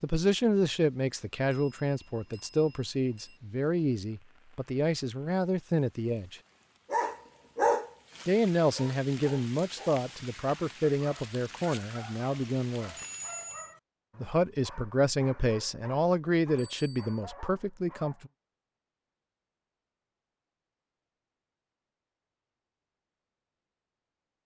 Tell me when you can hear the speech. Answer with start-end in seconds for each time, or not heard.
0.0-6.4, 8.2-12.9, 14.2-18.3.